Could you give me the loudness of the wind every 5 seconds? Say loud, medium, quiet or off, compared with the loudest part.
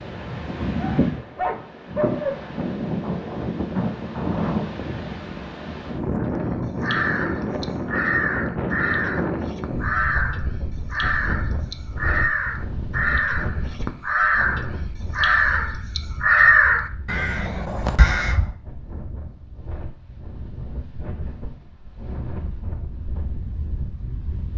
loud, loud, medium, quiet, medium.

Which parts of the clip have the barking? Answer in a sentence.
The barking can be heard from 0.8 to 2.4 s.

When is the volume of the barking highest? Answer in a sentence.
The volume of the barking peaks at 2 seconds.